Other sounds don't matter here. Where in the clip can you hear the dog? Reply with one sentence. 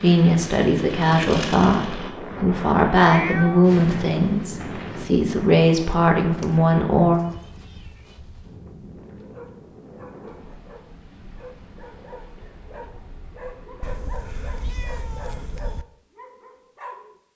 The dog can be heard from 9.2 to 17.1 s.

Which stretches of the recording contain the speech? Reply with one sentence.
The speech can be heard from 0.0 to 7.2 s.